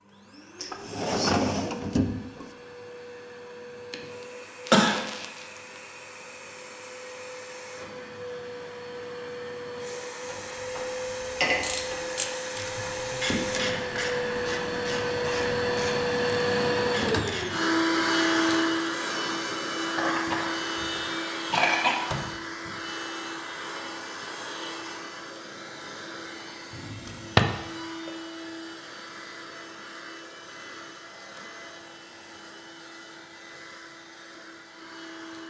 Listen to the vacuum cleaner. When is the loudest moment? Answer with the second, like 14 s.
18 s.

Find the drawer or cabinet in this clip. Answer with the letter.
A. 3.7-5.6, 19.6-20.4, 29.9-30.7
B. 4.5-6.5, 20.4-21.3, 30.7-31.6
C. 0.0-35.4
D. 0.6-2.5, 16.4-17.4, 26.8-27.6
D.